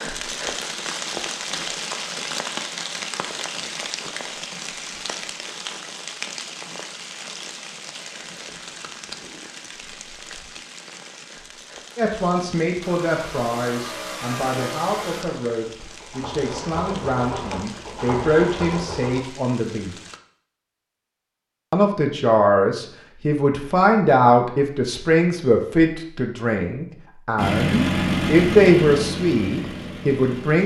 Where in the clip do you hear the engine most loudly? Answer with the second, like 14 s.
28 s.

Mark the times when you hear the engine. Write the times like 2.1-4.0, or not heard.
12.8-19.2, 27.4-30.6.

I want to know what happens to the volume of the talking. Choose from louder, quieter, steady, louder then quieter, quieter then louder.
louder.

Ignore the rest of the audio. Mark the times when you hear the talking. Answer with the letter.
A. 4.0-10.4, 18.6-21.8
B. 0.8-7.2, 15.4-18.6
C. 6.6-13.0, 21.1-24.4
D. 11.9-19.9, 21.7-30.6
D.